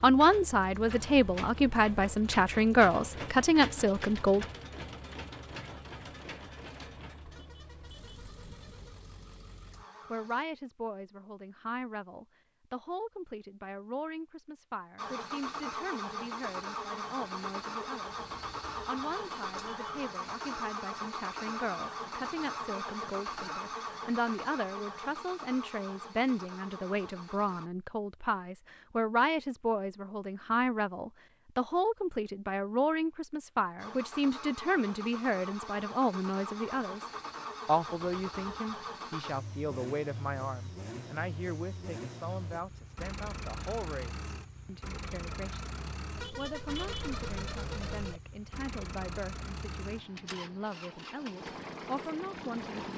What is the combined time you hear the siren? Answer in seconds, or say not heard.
not heard.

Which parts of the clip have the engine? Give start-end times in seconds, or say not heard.
0.0-10.4, 14.9-27.7, 33.8-52.9.